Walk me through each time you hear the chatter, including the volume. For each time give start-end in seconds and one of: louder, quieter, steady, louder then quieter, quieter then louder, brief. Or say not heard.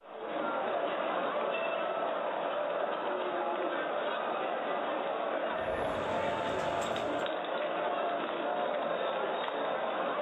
0.0-10.1 steady.